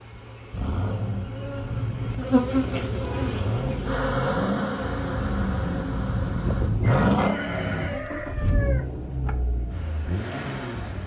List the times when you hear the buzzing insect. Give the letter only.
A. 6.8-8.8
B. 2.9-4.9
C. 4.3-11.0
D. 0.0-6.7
D.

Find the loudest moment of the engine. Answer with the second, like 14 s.
7 s.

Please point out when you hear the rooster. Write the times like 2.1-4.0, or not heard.
6.8-8.8.